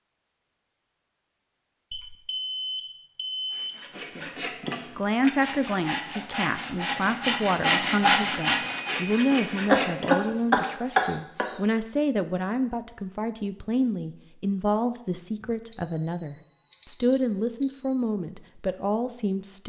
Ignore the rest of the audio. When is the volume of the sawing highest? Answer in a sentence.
The volume of the sawing peaks at 8 seconds.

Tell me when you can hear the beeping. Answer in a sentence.
The beeping can be heard from 1.9 to 3.8 s, from 8.4 to 9.4 s and from 15.4 to 18.1 s.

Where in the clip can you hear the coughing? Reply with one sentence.
The coughing can be heard from 9.7 to 11.5 s.